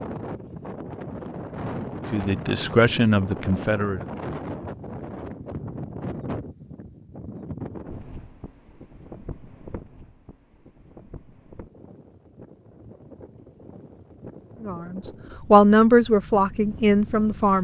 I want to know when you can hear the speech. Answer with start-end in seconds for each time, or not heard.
2.1-4.0, 14.6-17.5.